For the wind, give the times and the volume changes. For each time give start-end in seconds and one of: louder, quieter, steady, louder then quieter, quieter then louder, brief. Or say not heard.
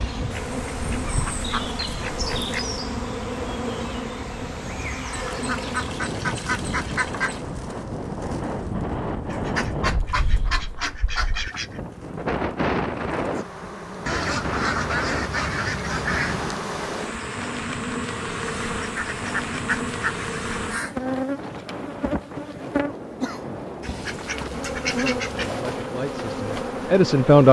0.0-27.4 louder then quieter.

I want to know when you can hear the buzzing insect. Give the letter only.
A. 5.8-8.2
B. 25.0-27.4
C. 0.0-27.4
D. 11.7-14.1
C.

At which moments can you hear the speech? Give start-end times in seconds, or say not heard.
25.0-27.4.